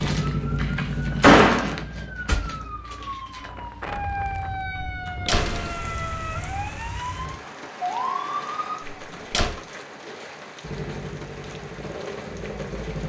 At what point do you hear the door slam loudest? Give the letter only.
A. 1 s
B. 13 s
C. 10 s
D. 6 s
A.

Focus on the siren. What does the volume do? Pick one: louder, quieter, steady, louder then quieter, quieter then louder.
louder.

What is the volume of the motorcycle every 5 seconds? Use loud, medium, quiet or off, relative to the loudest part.
loud, off, medium.